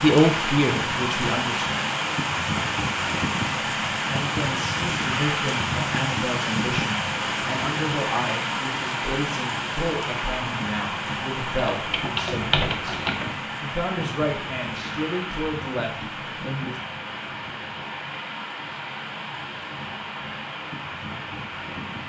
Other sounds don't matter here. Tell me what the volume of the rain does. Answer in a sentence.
The volume of the rain goes down.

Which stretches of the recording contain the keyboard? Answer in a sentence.
You can hear the keyboard from 11.7 to 13.2 s.